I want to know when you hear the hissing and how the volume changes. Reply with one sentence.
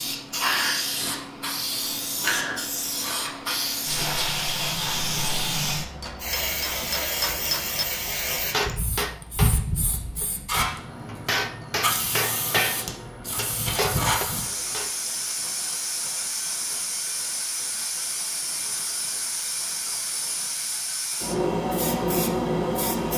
The hissing can be heard from 0.0 to 23.1 s, at a steady volume.